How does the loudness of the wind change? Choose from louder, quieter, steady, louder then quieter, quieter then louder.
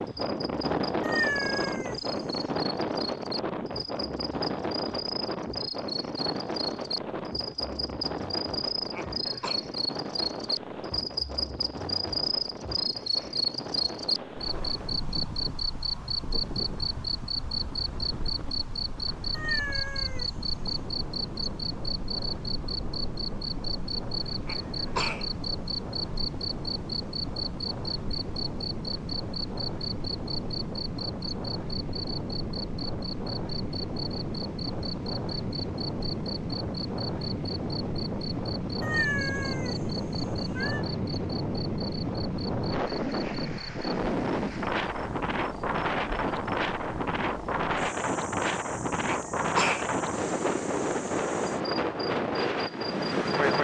quieter then louder.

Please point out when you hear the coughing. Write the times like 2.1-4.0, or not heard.
8.9-9.6, 24.4-25.3, 49.0-49.9.